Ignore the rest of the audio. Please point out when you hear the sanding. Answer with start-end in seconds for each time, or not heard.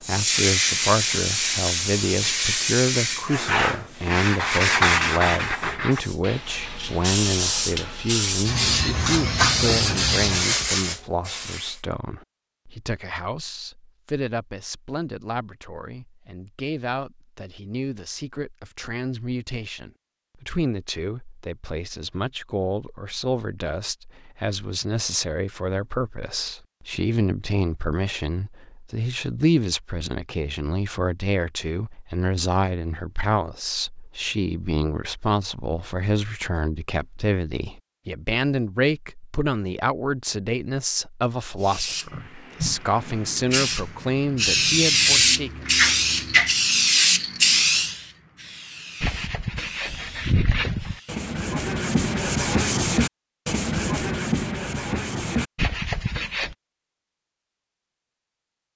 0.2-8.0, 49.0-56.5.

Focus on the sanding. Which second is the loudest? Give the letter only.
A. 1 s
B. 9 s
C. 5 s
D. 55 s
C.